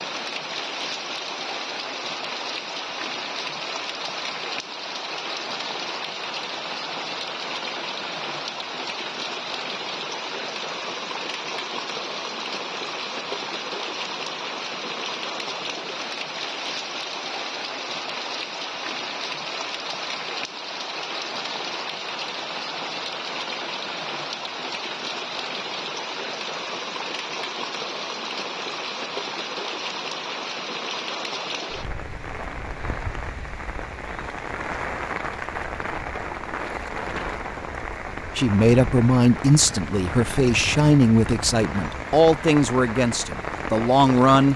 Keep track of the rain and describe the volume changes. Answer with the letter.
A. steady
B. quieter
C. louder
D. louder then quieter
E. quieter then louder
A.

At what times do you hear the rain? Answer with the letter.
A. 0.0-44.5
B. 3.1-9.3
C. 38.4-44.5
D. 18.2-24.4
A.